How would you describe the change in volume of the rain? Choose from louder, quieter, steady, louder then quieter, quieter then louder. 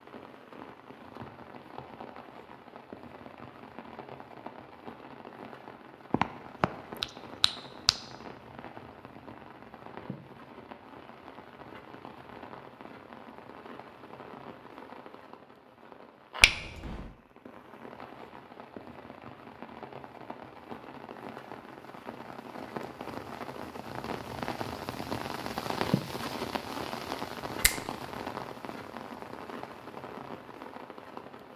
louder.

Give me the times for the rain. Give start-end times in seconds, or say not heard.
0.0-31.5.